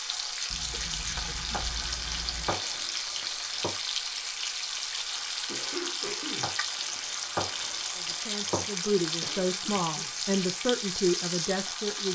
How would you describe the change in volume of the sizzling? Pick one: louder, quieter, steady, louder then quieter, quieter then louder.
steady.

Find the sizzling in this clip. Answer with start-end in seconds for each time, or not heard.
0.0-12.1.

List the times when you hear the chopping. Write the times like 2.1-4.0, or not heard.
1.5-3.8, 6.4-8.7.